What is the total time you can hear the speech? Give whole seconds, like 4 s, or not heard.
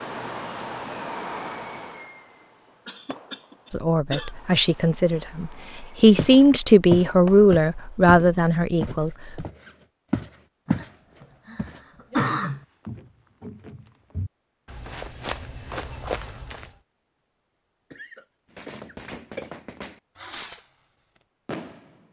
6 s.